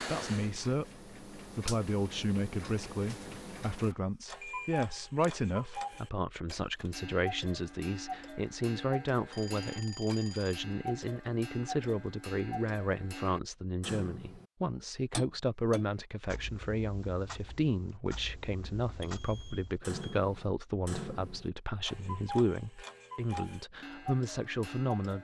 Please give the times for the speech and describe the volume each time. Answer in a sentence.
The speech can be heard from 0.1 to 25.1 s, at a steady volume.